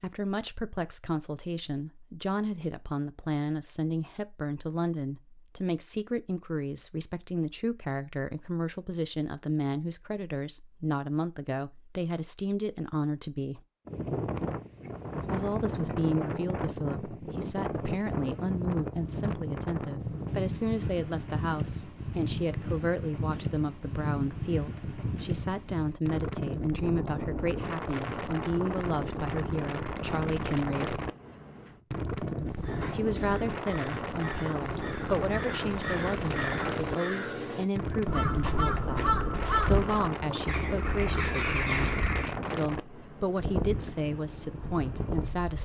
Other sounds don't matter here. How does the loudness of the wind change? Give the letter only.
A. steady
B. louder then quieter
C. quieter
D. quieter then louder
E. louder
A.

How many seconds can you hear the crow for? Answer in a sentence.
You can hear the crow for 10 seconds altogether.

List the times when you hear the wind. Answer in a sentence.
You can hear the wind from 13.8 to 45.6 s.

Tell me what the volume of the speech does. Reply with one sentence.
The loudness of the speech stays about the same.